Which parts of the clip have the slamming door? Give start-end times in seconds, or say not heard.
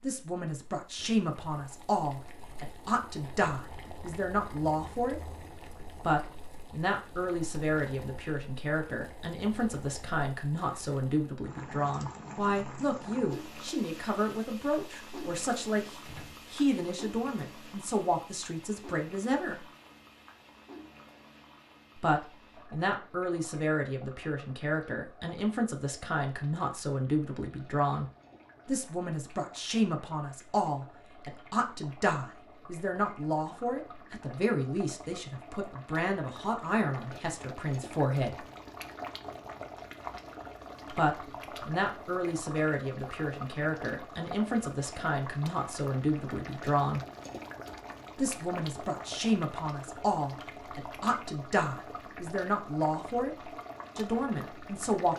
16.1-16.6.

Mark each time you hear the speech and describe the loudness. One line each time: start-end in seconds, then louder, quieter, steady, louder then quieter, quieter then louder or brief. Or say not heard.
0.0-5.3 steady
6.0-19.6 steady
21.9-28.1 steady
28.6-38.4 steady
40.9-47.0 steady
48.1-55.1 steady.